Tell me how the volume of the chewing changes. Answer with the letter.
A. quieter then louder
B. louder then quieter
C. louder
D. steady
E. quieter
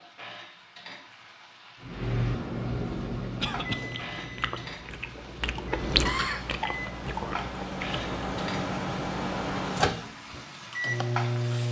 B.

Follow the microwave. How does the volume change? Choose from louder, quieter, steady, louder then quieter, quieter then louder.
quieter then louder.